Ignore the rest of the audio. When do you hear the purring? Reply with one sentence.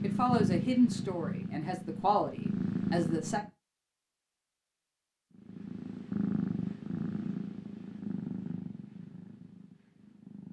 The purring can be heard from 0.0 to 3.5 s and from 5.3 to 10.4 s.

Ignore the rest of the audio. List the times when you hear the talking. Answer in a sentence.
The talking can be heard from 0.0 to 3.4 s.